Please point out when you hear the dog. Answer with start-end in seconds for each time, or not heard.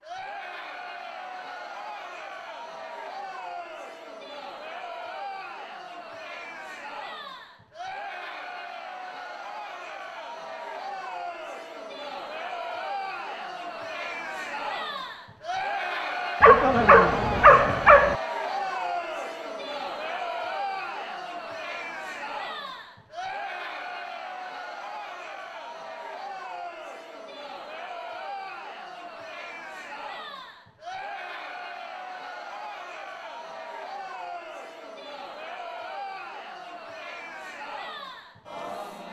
16.4-18.1.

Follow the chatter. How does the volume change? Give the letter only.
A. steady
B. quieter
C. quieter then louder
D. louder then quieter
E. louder
D.